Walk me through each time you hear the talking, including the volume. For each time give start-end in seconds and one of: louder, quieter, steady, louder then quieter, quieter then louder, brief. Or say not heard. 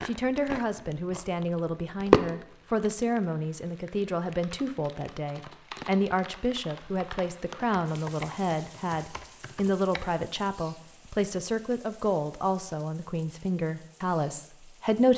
0.1-15.1 steady.